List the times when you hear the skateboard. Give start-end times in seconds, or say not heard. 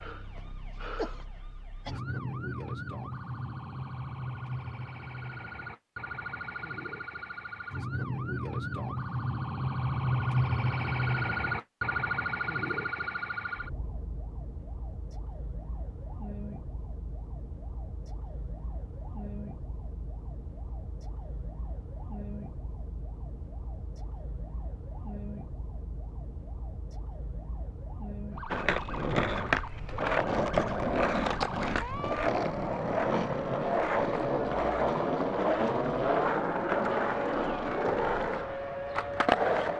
28.5-39.7.